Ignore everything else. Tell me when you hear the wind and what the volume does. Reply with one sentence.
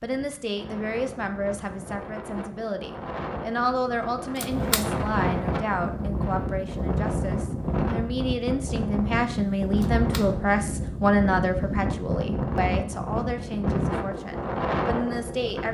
The wind can be heard from 0.0 to 15.6 s, getting louder.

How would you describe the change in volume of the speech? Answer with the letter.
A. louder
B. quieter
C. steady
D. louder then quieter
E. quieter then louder
D.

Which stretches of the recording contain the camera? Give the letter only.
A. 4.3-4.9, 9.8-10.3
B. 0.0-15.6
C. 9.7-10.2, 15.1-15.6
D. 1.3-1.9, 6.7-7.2
A.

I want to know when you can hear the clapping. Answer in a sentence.
The clapping can't be heard in this clip.